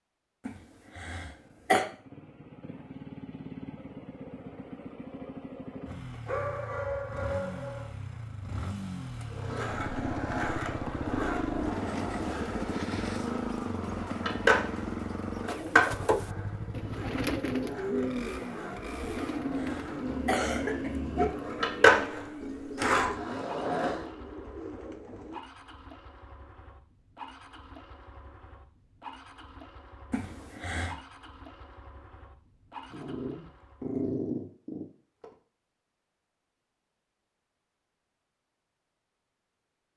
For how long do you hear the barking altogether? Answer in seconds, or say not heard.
5 s.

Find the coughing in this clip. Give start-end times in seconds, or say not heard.
0.5-1.9, 19.0-20.9, 30.1-30.9.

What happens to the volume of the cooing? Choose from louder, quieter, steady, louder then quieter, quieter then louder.
quieter.